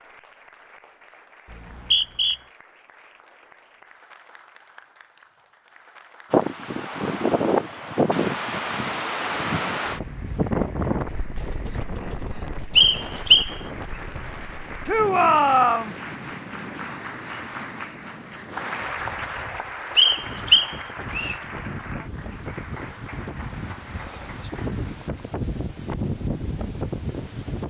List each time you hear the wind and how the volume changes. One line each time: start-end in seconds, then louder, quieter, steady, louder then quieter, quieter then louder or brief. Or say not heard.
6.3-27.6 quieter then louder.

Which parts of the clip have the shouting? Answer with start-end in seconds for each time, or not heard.
14.8-15.9.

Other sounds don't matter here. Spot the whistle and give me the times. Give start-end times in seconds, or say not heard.
1.5-2.4, 12.8-13.5, 19.9-21.4.